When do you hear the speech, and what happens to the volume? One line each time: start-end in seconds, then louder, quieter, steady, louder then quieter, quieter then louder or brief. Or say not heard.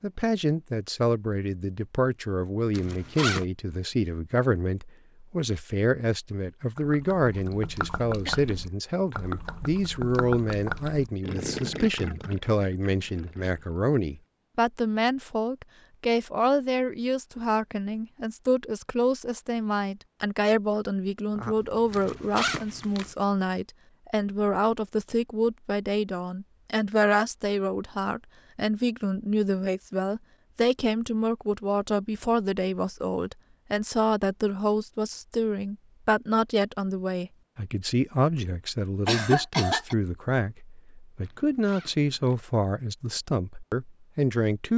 0.0-44.7 steady.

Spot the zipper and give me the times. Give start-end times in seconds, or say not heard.
2.7-3.5, 21.9-23.1, 41.2-42.4.